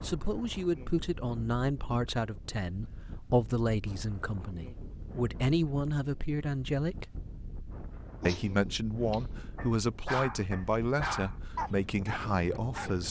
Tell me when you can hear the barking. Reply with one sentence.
You can hear the barking from 8.2 to 13.0 s.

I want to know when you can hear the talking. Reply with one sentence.
You can hear the talking from 0.0 to 7.2 s and from 8.2 to 13.0 s.